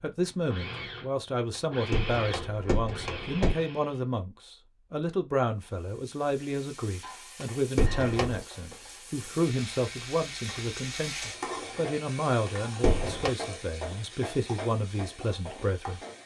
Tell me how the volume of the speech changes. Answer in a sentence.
The loudness of the speech stays about the same.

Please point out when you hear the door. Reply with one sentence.
You can hear the door from 1.9 to 3.5 s, from 7.4 to 8.4 s and from 12.4 to 13.3 s.